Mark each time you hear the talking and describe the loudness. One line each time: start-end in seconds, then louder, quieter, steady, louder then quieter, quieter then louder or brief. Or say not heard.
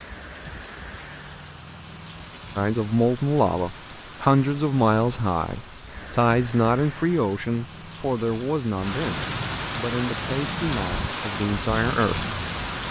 2.5-12.3 quieter.